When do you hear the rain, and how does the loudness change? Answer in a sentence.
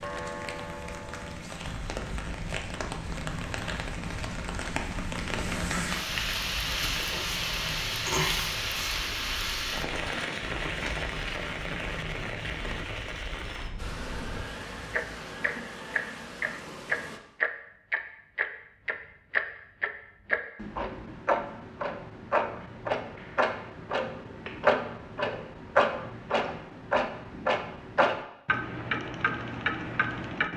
You can hear the rain from 0.0 to 17.2 s, getting louder then quieter.